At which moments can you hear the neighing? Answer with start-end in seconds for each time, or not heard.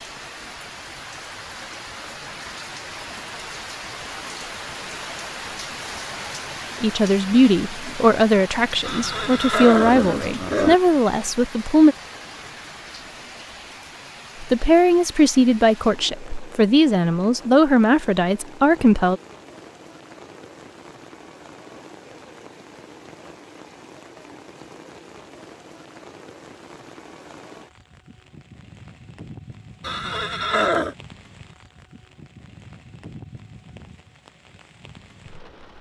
8.8-10.8, 29.8-30.9.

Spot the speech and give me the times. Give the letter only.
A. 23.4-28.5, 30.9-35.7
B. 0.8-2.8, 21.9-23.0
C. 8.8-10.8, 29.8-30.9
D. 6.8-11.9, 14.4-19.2
D.